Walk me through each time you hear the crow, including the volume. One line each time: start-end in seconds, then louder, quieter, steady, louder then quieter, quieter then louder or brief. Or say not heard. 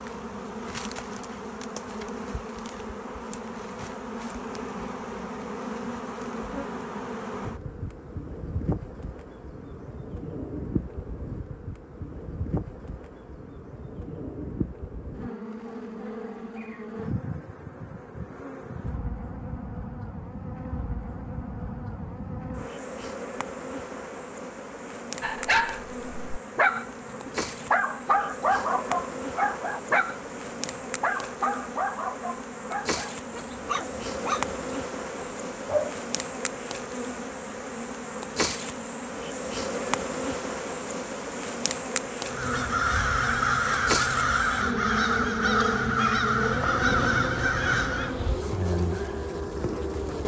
42.2-48.1 steady.